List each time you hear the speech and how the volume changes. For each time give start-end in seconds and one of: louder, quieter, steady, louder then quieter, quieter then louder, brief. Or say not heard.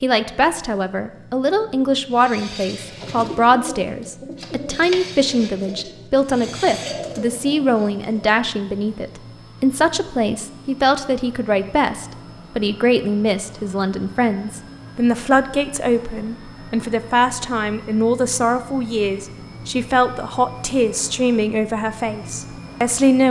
0.0-23.2 steady.